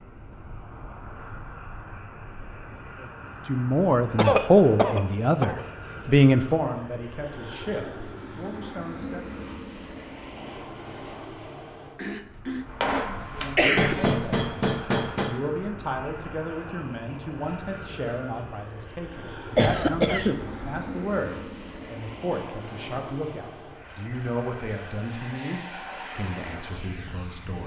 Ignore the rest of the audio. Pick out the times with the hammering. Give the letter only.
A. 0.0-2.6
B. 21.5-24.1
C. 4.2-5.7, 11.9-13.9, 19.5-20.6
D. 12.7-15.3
D.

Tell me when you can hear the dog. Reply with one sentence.
The dog can't be heard in this clip.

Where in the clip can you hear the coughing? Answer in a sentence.
You can hear the coughing from 4.2 to 5.7 s, from 11.9 to 13.9 s and from 19.5 to 20.6 s.